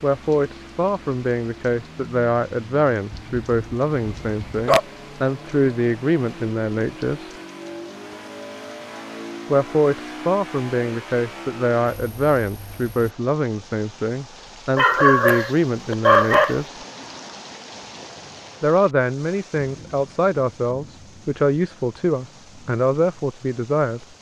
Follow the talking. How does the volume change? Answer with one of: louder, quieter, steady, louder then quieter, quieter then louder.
steady.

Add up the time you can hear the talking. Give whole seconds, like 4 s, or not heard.
20 s.